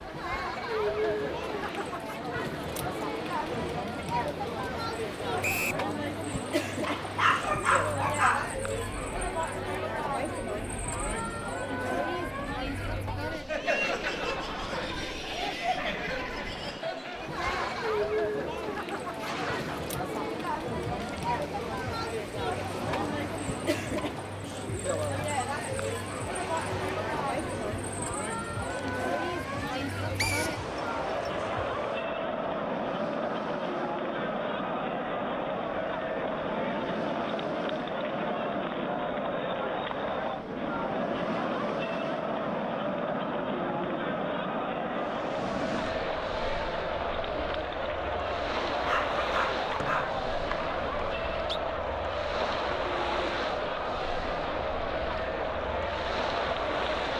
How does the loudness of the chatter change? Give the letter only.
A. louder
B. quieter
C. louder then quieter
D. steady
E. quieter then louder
D.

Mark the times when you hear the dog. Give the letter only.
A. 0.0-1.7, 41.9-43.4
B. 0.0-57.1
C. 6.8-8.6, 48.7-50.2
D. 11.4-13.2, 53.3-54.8
C.